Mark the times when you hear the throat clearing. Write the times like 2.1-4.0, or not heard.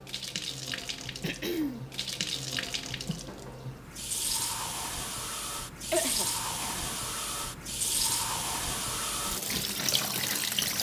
1.2-1.9, 5.9-6.9.